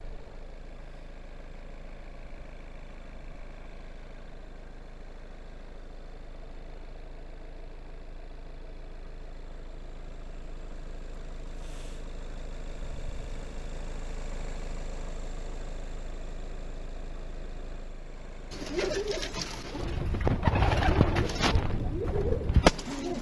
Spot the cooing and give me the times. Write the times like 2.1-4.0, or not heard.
18.5-23.1.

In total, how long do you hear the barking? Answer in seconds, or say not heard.
not heard.